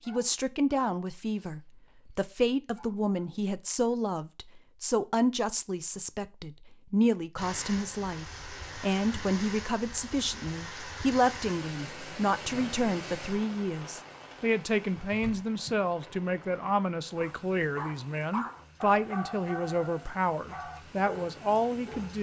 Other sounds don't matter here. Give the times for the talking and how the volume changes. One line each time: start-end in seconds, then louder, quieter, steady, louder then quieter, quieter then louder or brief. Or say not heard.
0.1-22.1 steady.